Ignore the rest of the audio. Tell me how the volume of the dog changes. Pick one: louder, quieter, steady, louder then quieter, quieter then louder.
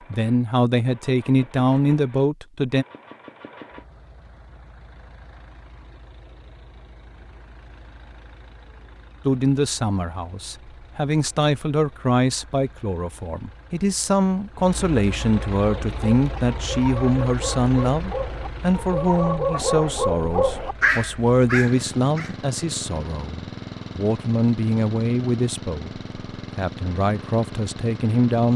louder.